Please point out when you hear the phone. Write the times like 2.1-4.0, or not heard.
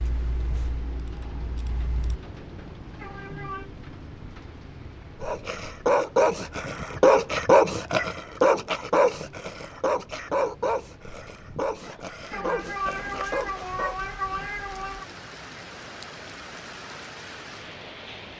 not heard.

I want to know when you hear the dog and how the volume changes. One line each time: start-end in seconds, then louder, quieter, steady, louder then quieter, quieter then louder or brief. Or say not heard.
5.2-13.9 quieter.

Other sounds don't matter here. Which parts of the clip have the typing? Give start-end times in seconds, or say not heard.
0.0-2.2.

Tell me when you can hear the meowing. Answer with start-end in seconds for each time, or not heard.
3.0-3.6, 12.3-15.1.